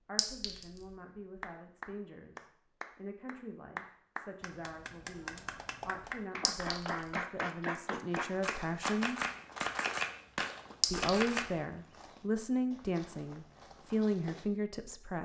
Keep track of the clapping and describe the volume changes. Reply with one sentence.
The volume of the clapping goes up.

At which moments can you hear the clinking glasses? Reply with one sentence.
You can hear the clinking glasses from 0.1 to 0.9 s, from 6.5 to 7.2 s and from 10.8 to 11.3 s.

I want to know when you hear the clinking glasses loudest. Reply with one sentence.
The loudest moment of the clinking glasses is at 11 seconds.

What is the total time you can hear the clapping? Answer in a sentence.
You can hear the clapping for 10 seconds altogether.